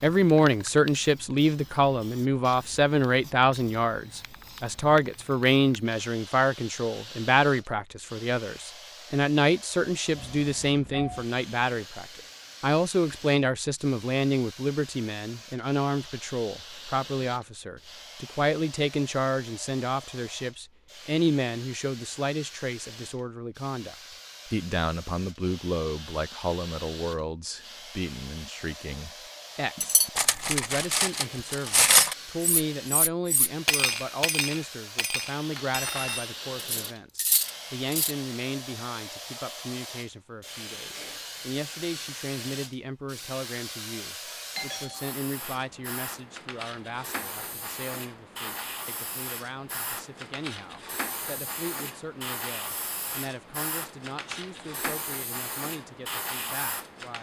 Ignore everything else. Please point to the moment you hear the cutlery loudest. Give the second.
32 s.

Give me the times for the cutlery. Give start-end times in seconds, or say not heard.
29.8-38.1.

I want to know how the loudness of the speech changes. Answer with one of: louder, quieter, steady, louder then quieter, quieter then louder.
quieter.